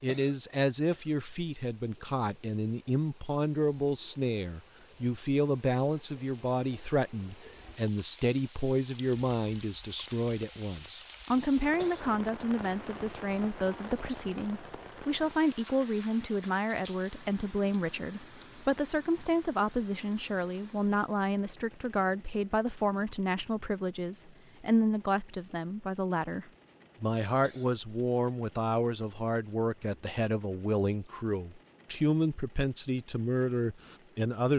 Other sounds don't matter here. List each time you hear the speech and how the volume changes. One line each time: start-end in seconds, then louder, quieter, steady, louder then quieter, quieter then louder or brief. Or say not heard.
0.0-34.5 steady.